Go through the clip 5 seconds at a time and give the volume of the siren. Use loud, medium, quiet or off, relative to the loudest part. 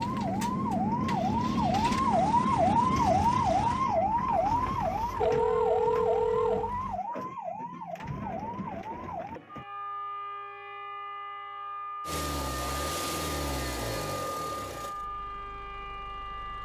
loud, medium, quiet, quiet.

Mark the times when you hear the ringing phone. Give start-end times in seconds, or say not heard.
5.2-6.7.